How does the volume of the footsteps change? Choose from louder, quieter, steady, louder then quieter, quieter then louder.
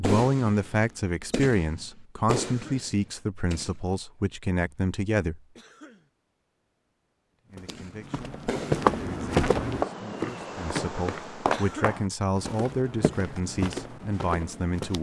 quieter.